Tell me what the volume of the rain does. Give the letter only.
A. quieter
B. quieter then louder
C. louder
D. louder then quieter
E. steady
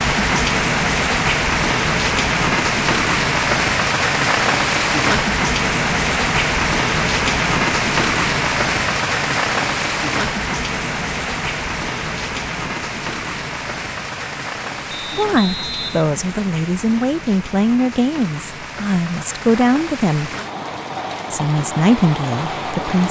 A.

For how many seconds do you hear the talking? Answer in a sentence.
You can hear the talking for 7 seconds altogether.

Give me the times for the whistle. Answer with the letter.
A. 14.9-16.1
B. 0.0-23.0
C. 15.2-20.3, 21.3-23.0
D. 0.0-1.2
A.